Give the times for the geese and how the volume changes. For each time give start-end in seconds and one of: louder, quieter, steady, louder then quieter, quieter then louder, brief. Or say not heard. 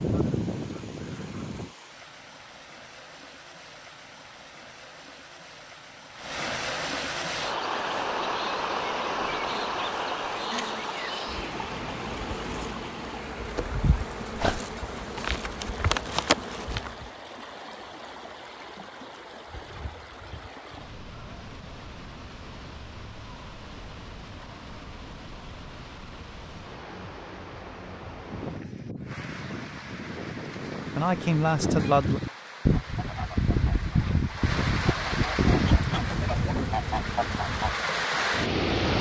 0.0-1.8 brief
28.2-37.8 louder.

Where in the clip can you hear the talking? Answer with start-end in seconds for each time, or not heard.
30.9-32.2.